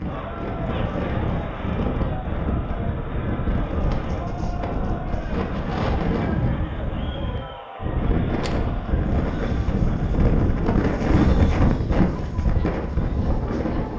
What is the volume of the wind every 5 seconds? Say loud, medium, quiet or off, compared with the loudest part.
medium, loud, loud.